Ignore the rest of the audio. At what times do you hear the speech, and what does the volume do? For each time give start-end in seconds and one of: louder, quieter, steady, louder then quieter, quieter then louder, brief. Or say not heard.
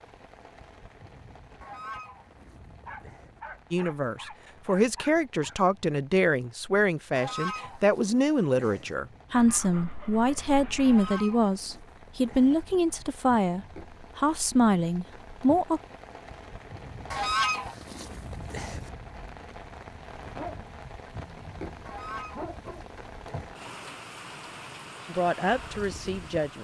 3.7-15.8 steady
25.1-26.5 brief.